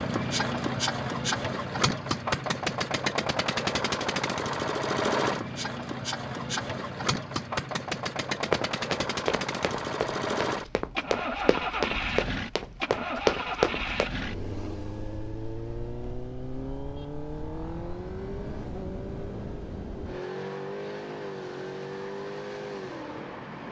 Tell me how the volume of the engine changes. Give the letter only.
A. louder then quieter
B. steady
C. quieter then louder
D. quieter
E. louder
D.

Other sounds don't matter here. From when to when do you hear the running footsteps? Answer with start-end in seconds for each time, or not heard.
8.4-14.1.